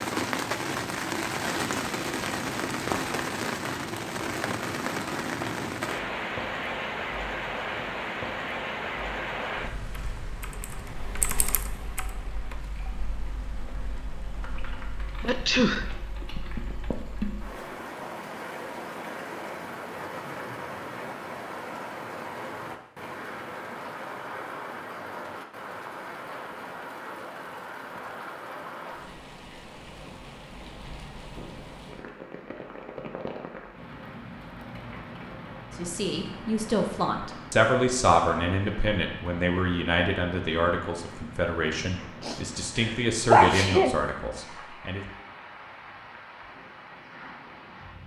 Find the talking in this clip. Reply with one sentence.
The talking can be heard from 35.8 to 45.0 s.